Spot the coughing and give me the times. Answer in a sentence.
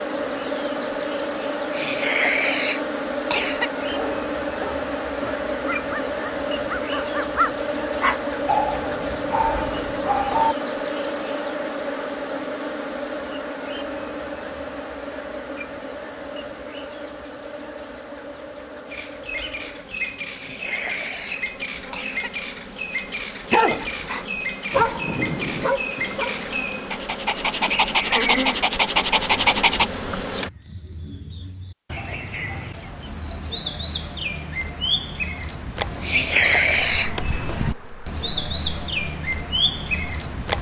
You can hear the coughing from 1.7 to 3.7 s, from 20.4 to 22.3 s and from 36.0 to 37.3 s.